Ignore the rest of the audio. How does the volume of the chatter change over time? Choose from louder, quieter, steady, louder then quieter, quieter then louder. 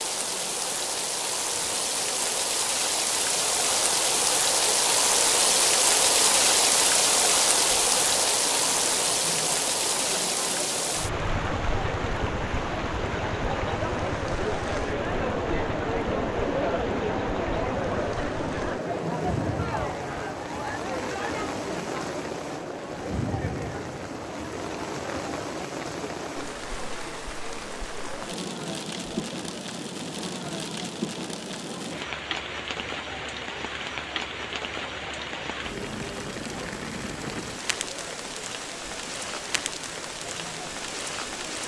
louder then quieter.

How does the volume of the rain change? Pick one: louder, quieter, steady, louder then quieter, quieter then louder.
quieter.